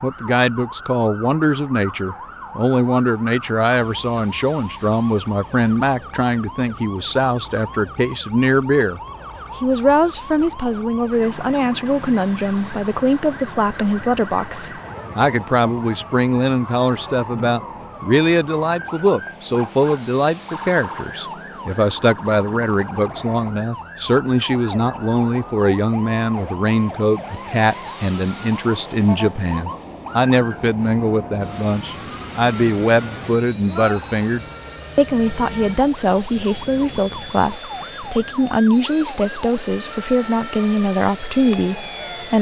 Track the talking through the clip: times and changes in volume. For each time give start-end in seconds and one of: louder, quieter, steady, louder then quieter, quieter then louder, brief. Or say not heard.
0.0-42.3 steady.